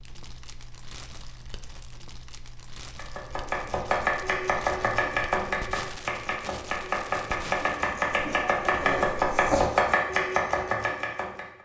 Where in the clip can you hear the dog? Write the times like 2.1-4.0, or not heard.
8.1-9.7.